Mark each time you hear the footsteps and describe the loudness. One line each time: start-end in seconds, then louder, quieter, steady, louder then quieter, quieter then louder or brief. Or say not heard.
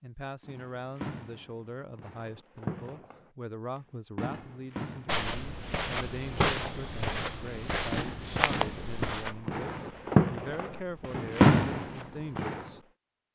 5.0-12.4 quieter.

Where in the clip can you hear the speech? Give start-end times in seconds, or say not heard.
0.0-13.3.